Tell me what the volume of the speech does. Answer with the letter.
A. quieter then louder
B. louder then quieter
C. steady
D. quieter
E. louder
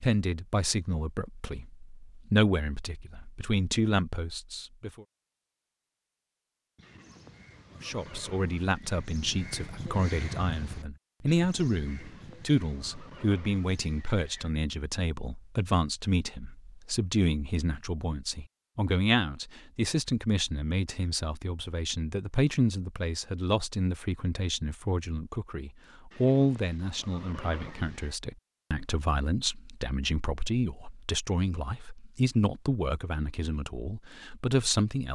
C.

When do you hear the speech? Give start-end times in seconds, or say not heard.
0.0-5.0, 7.8-35.1.